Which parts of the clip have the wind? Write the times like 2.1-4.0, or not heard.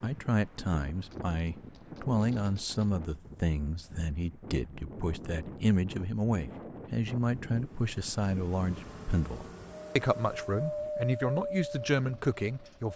0.0-12.9.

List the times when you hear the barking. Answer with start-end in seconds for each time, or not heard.
not heard.